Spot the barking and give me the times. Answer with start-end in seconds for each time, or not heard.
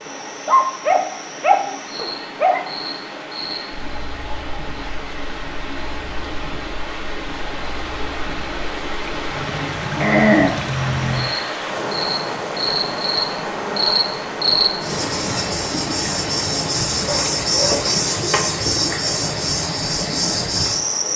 0.5-2.6, 9.8-10.5, 17.0-18.4.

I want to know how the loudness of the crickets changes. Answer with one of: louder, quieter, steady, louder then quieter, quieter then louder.
quieter then louder.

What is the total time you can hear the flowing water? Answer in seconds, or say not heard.
21 s.